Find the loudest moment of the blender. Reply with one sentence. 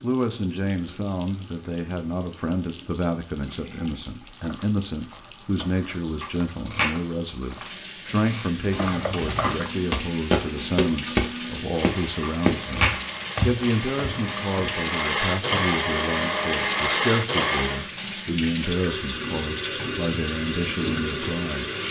The loudest moment of the blender is at 17 seconds.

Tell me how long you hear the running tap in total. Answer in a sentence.
The running tap can be heard for 22 seconds in total.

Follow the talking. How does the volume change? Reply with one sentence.
The loudness of the talking stays about the same.